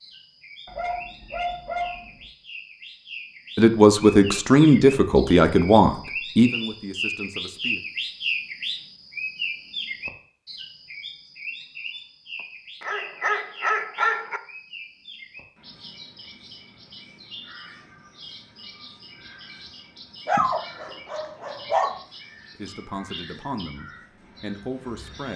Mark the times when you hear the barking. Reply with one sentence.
The barking can be heard from 0.7 to 2.2 s, from 12.8 to 14.4 s and from 20.2 to 21.9 s.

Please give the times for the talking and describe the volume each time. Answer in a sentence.
The talking can be heard from 3.5 to 7.8 s, getting quieter; and briefly from 22.6 to 25.3 s.